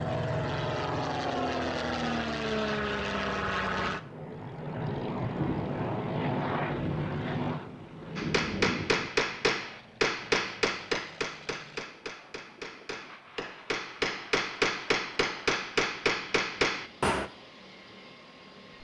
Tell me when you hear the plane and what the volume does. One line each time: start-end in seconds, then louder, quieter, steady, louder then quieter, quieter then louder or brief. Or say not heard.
0.0-18.8 quieter.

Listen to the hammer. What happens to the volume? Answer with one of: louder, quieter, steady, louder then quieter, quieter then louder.
quieter then louder.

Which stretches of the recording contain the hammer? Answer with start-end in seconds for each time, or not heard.
8.2-17.3.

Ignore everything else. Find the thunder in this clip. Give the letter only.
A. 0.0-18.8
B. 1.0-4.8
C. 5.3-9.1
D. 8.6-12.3
C.